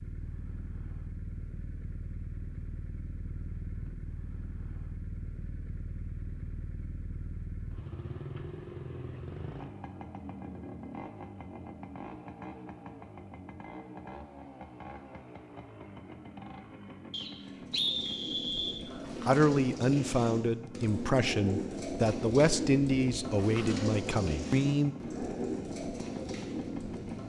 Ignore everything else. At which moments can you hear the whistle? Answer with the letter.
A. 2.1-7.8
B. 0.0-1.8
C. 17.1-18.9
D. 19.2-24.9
C.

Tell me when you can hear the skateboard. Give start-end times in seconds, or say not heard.
not heard.